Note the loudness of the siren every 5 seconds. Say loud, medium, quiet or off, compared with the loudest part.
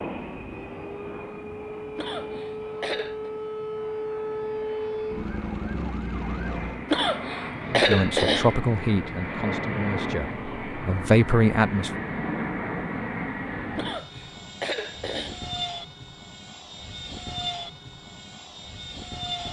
loud, loud, off, off.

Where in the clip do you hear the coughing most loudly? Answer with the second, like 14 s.
8 s.